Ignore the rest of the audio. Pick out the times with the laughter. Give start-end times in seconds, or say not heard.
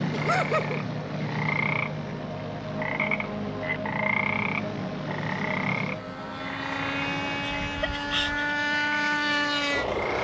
0.1-0.8, 7.6-8.6.